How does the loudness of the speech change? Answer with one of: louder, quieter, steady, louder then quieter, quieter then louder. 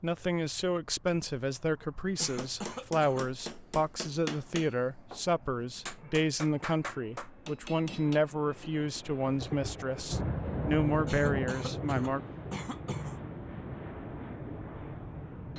steady.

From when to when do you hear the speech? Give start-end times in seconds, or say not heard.
0.0-12.2.